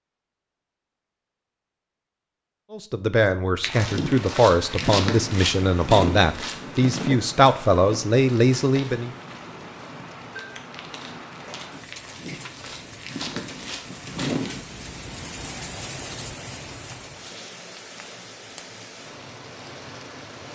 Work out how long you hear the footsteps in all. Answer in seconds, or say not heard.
11 s.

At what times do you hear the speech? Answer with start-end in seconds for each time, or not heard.
2.7-9.1.